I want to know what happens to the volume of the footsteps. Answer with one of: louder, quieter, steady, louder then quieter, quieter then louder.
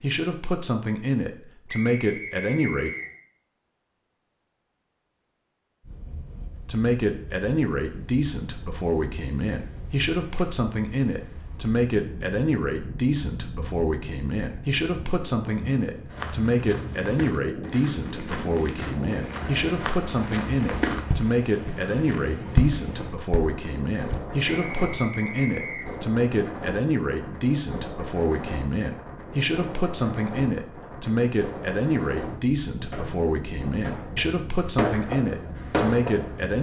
louder.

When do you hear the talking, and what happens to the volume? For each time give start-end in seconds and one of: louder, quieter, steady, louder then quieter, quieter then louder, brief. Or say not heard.
0.0-2.9 brief
6.7-36.5 steady.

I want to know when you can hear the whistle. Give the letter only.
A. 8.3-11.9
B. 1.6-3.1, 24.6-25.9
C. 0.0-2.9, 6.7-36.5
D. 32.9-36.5
B.